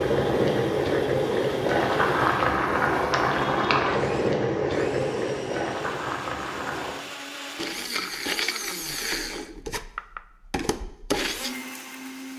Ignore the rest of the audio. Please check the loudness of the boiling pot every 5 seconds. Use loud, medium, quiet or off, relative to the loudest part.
loud, medium, off.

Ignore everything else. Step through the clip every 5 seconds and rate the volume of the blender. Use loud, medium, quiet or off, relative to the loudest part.
medium, loud, loud.